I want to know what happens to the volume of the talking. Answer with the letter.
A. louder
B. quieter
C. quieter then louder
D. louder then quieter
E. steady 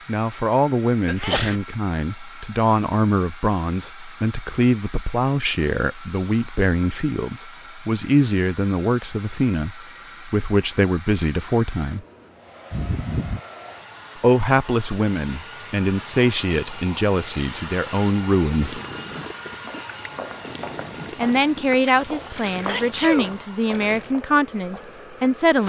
E.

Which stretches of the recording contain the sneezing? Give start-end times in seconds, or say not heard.
1.1-1.6, 12.7-13.4, 21.8-23.4.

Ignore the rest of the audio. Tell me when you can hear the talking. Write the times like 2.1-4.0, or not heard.
0.1-12.0, 14.2-18.8, 21.1-25.6.